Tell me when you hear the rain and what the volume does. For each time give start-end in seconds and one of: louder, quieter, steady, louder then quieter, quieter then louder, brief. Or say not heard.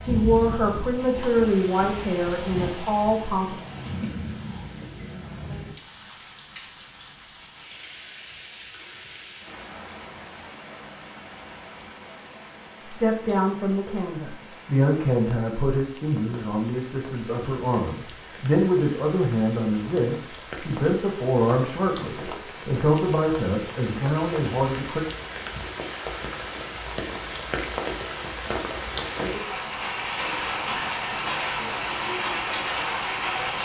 0.0-33.5 quieter then louder.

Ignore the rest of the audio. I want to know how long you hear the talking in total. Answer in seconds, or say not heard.
16 s.